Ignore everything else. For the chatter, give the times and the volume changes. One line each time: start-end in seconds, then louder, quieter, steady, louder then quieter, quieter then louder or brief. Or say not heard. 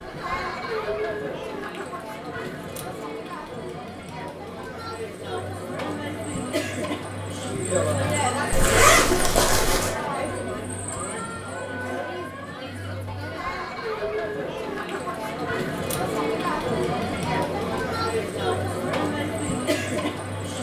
0.0-20.5 louder.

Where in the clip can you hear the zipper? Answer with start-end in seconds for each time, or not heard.
8.5-9.9.